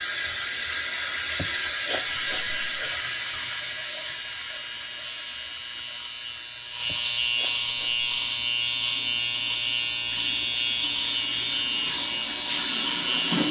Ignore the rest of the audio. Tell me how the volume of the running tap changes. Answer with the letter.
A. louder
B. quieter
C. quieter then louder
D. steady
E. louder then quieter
C.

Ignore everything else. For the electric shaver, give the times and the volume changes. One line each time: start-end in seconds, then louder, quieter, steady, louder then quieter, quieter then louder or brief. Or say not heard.
0.0-13.4 louder.